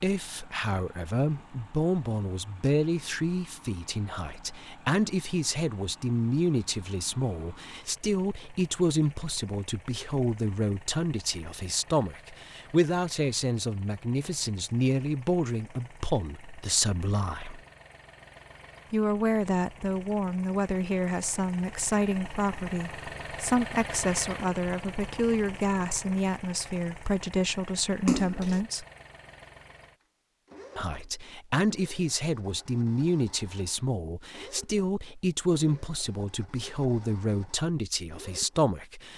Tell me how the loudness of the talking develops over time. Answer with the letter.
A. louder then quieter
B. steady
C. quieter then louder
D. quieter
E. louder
B.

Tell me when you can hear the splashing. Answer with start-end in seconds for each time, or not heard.
28.1-28.6.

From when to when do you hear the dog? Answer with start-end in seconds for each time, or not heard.
not heard.